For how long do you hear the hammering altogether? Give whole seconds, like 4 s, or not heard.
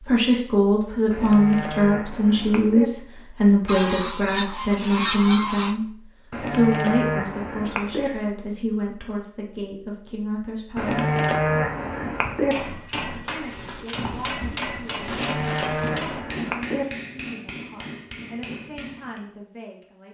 7 s.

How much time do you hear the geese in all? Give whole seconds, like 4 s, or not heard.
2 s.